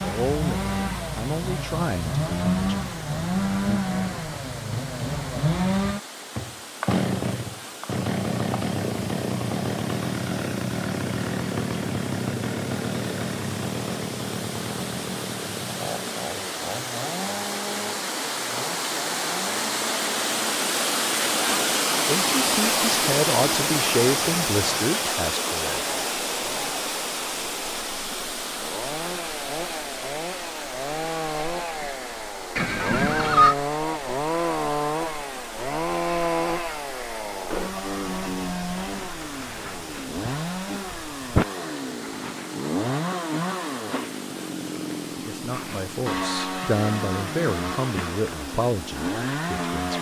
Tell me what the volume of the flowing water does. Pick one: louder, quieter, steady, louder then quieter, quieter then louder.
louder then quieter.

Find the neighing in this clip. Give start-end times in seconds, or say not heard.
32.5-33.5.